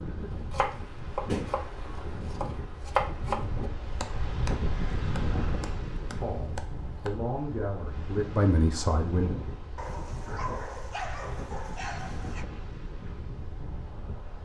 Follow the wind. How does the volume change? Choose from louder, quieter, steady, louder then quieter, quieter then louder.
louder then quieter.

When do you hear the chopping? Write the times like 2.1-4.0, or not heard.
0.3-7.2.